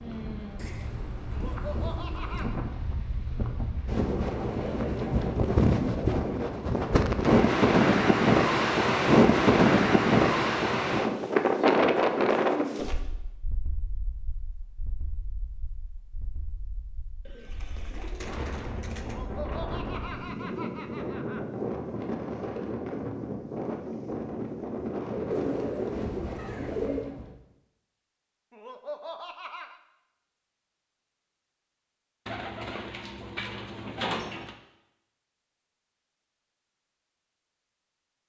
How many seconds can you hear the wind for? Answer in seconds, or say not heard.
27 s.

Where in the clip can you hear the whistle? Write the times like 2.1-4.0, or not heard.
not heard.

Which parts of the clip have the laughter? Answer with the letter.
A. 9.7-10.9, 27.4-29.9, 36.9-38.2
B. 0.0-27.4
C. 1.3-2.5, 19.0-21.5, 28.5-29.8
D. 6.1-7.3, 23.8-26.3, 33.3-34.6
C.